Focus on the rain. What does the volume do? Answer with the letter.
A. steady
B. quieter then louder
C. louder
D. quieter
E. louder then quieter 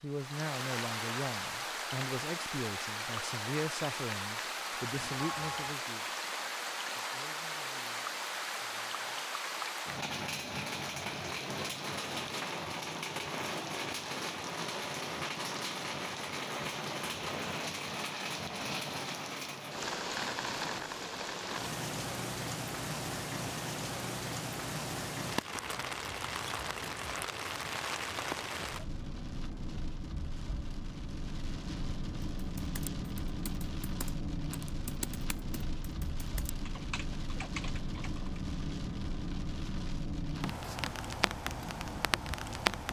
A.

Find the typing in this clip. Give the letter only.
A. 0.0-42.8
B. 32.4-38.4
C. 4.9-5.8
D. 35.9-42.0
B.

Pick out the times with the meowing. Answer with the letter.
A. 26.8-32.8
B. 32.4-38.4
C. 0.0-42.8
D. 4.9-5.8
D.